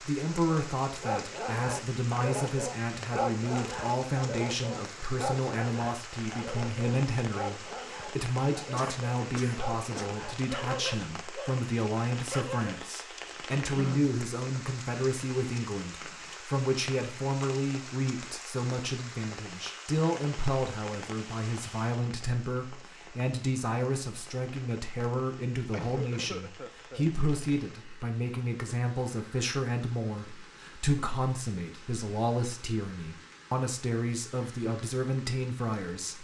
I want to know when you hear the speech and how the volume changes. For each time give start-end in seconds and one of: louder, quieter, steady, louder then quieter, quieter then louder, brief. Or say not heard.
0.0-36.1 steady.